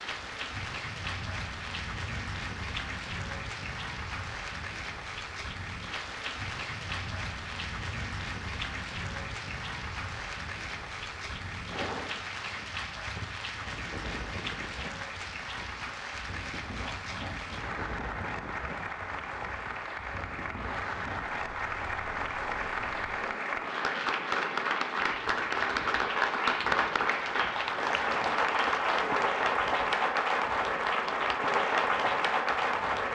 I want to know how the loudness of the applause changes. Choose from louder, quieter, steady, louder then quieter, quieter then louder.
louder.